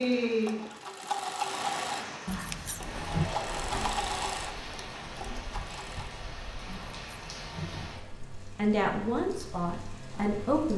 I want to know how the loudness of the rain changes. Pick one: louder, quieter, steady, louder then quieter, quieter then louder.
quieter.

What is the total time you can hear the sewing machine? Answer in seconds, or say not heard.
6 s.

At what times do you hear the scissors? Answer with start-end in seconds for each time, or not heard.
2.2-3.4, 6.7-8.1.